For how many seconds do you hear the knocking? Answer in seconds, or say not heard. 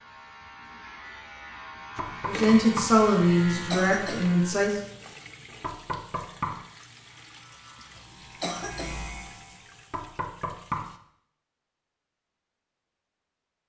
3 s.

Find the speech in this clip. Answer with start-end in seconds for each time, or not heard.
2.2-4.8.